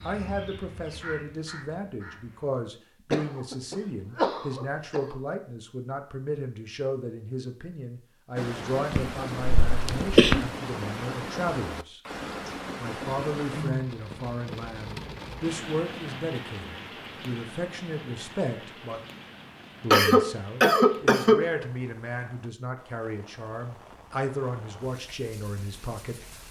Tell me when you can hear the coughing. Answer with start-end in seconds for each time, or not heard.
3.1-5.0, 8.9-10.4, 19.9-21.4.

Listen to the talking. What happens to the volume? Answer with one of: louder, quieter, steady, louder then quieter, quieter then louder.
steady.